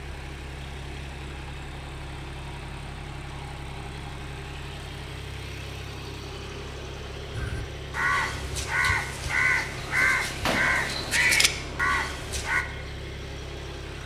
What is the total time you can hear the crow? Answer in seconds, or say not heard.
5 s.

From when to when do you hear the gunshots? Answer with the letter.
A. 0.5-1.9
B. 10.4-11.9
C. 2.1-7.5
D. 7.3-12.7
B.